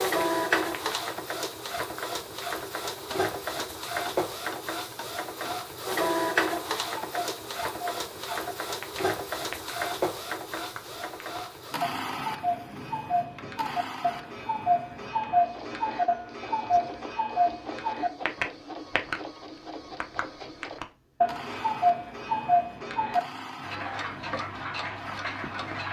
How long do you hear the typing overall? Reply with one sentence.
You can't hear the typing here.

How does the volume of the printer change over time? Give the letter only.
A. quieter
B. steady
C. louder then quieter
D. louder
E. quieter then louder
A.